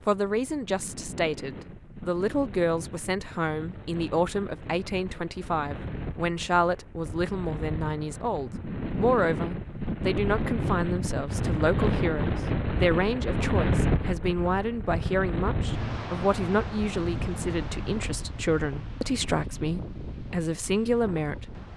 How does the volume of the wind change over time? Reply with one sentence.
The loudness of the wind goes up, then down.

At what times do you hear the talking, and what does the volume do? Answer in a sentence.
You can hear the talking from 0.1 to 21.6 s, at a steady volume.